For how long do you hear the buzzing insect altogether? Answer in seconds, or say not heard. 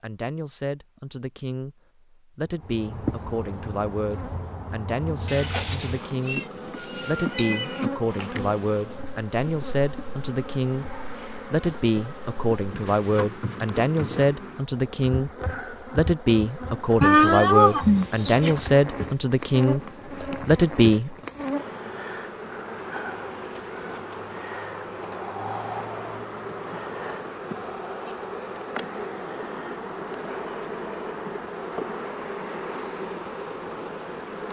32 s.